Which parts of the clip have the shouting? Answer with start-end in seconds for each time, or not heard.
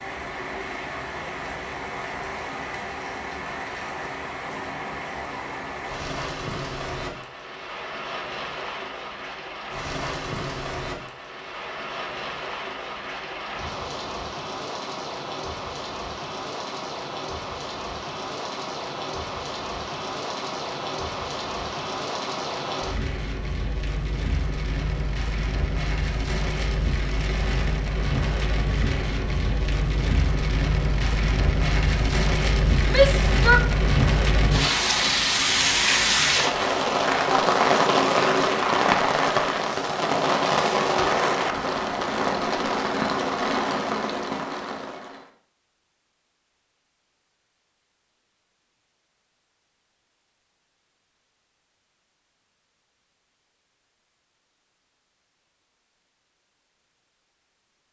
32.9-33.6.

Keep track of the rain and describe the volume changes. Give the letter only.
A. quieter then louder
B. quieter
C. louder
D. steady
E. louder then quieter
C.